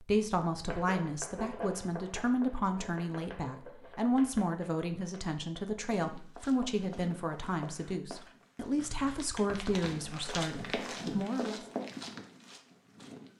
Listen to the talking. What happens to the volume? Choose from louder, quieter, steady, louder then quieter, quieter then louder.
steady.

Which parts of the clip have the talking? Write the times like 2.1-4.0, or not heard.
0.0-11.6.